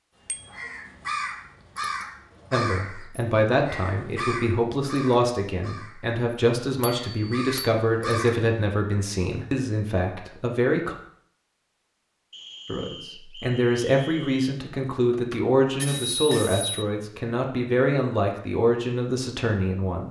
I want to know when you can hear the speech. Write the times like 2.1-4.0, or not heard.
2.5-10.9, 12.7-20.0.